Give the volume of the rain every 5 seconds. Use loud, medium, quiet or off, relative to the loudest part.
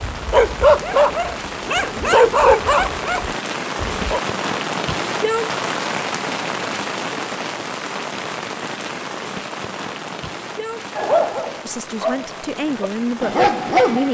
loud, loud, medium.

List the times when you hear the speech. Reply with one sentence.
You can hear the speech from 11.7 to 14.1 s.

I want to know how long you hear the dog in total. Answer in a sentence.
The dog can be heard for 7 seconds in total.